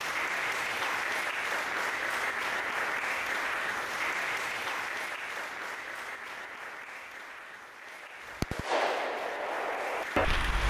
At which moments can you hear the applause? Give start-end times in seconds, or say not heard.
0.0-10.6.